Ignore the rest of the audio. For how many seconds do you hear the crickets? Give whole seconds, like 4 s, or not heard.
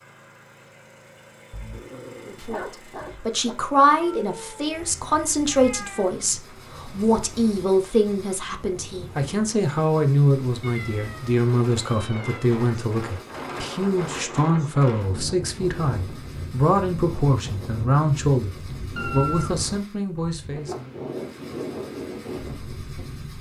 not heard.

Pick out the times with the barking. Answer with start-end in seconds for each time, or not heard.
1.5-3.5.